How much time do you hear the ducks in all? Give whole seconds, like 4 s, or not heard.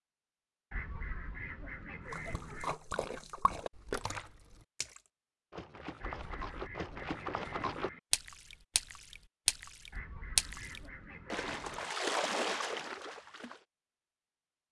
6 s.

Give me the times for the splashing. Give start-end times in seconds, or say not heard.
2.0-13.6.